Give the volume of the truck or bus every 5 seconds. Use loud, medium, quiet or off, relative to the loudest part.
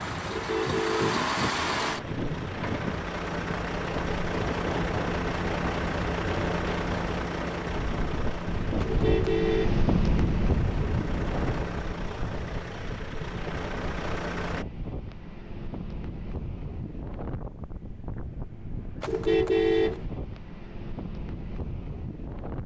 loud, loud, medium, off, off.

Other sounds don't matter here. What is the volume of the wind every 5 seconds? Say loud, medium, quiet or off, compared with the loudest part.
loud, loud, loud, medium, medium.